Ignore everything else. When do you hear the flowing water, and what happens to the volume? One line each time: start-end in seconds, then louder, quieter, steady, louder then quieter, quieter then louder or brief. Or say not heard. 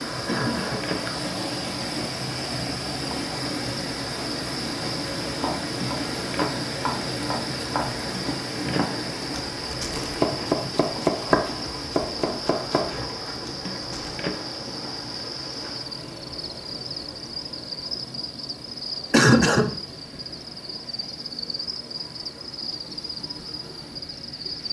0.0-24.6 quieter.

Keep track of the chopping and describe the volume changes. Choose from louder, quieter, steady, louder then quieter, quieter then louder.
louder then quieter.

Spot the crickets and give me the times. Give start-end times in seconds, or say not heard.
0.0-24.6.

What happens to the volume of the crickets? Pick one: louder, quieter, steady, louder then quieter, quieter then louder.
steady.